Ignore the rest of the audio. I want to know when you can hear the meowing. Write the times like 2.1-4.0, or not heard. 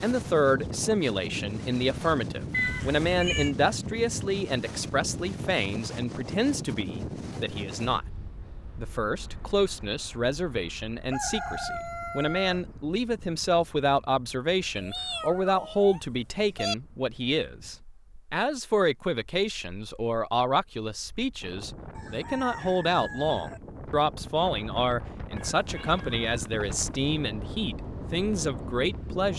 2.5-3.5, 14.8-16.8, 25.4-27.1.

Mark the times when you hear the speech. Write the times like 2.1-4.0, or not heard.
0.0-8.1, 8.8-29.3.